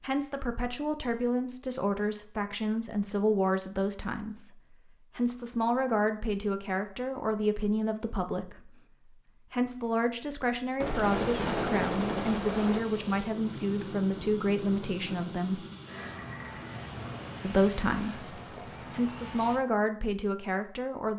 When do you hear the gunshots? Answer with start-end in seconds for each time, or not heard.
10.8-12.8.